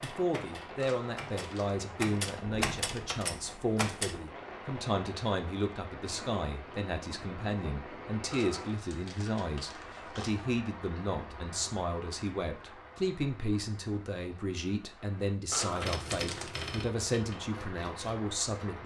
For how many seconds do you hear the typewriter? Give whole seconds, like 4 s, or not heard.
7 s.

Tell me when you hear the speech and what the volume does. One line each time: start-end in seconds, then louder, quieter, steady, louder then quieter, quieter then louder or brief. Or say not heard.
0.0-18.8 steady.